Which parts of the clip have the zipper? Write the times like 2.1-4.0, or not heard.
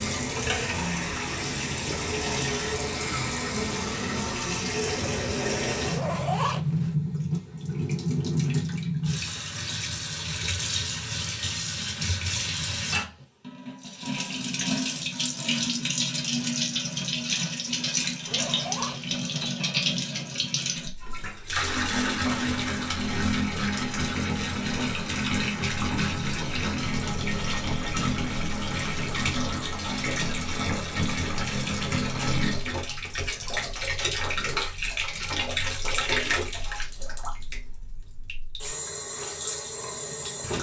5.8-7.0, 18.2-19.4, 36.2-37.2.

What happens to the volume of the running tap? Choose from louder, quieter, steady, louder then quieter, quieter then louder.
steady.